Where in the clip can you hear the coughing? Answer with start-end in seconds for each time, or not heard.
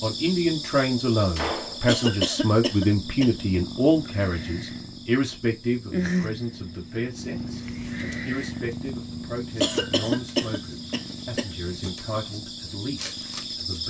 1.9-3.4, 9.6-11.5.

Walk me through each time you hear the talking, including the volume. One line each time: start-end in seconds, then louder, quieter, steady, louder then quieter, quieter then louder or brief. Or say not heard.
0.0-13.8 quieter.